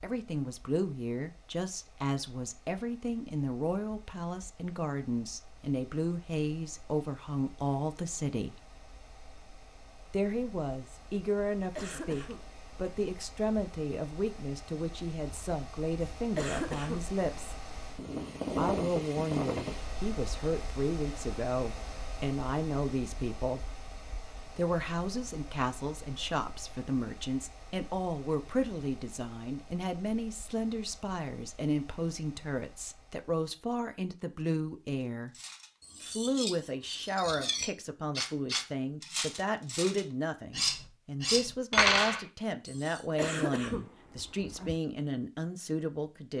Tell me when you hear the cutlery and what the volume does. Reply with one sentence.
The cutlery can be heard from 35.3 to 43.0 s, getting louder.